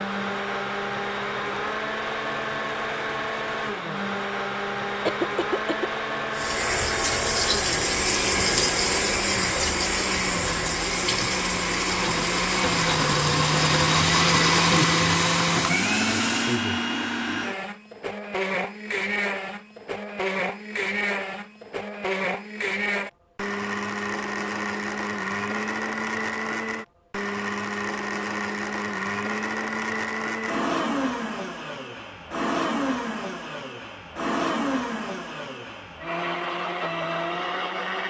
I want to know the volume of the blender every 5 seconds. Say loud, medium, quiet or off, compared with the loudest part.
medium, medium, loud, loud, medium, medium, medium, medium.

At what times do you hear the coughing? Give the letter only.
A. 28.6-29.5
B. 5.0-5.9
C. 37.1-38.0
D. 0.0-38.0
B.